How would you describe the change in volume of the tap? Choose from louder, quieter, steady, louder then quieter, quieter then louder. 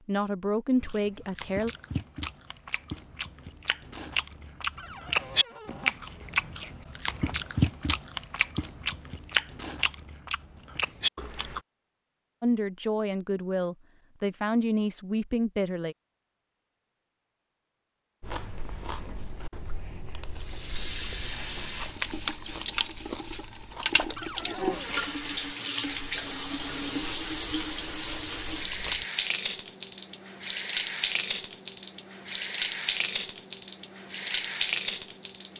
steady.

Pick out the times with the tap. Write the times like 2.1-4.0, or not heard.
20.4-35.5.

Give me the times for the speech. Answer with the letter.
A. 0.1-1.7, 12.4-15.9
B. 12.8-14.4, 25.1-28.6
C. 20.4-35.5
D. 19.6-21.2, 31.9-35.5
A.